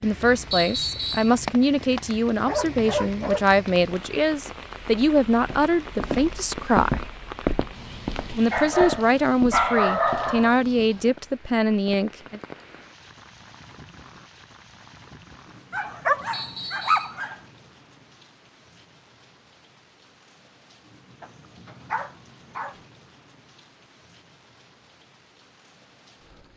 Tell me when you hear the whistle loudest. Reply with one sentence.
The volume of the whistle peaks at 1 second.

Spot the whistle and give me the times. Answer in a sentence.
The whistle can be heard from 0.5 to 1.4 s and from 16.3 to 17.1 s.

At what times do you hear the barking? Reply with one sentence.
You can hear the barking from 2.5 to 3.5 s, from 8.5 to 10.6 s, from 15.7 to 17.4 s and from 21.2 to 22.8 s.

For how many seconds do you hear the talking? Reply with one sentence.
The talking can be heard for 11 seconds in total.